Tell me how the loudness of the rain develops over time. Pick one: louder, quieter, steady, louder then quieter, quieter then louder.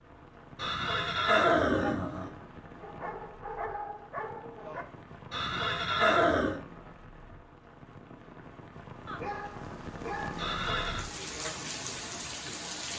louder.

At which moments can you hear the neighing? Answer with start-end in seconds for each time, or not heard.
0.6-2.3, 5.3-6.6, 10.3-11.1.